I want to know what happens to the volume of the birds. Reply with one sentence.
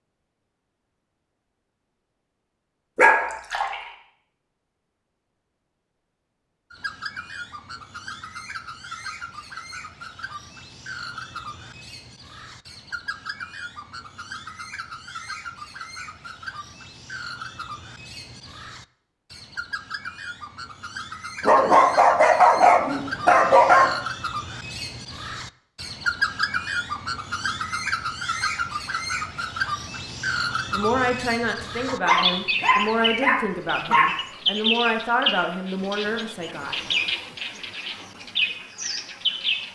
The volume of the birds goes up.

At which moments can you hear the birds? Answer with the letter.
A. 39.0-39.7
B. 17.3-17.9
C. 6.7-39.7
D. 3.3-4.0
C.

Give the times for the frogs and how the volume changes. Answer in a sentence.
The frogs can't be heard in this clip.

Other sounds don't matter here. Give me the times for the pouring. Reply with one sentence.
The pouring can be heard from 3.3 to 4.0 s.